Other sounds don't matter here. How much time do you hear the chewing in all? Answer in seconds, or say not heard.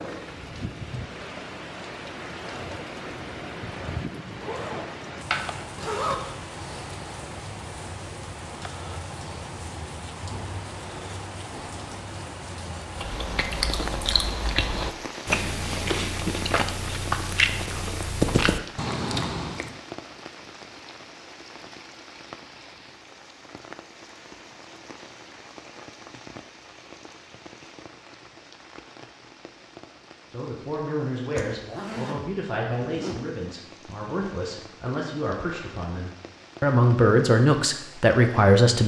7 s.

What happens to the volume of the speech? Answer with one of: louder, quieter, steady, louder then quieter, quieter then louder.
louder.